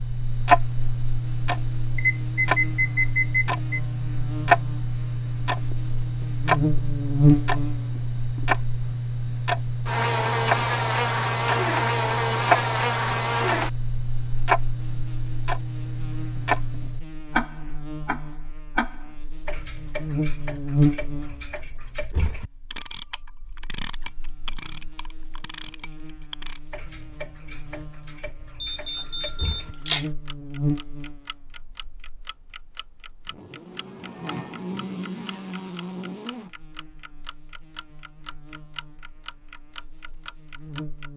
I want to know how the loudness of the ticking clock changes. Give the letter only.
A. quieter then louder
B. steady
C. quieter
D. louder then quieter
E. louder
C.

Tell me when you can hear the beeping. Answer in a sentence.
You can hear the beeping from 1.9 to 3.8 s and from 28.6 to 30.1 s.